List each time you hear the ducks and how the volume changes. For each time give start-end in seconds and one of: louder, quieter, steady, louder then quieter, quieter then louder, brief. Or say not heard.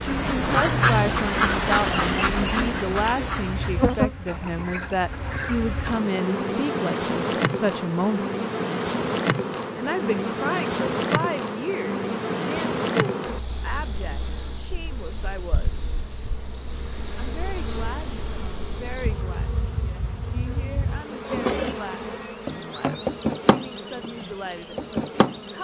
0.0-5.7 quieter.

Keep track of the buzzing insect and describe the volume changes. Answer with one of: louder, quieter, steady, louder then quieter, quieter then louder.
quieter then louder.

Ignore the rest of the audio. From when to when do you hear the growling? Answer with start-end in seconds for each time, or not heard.
not heard.